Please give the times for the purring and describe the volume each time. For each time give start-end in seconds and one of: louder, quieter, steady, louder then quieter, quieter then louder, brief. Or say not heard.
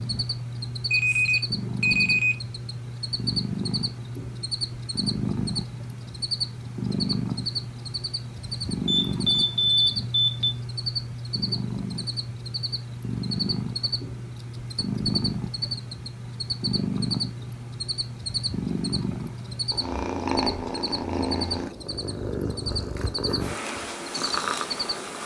0.0-25.2 steady.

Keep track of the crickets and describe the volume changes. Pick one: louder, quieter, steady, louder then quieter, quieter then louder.
steady.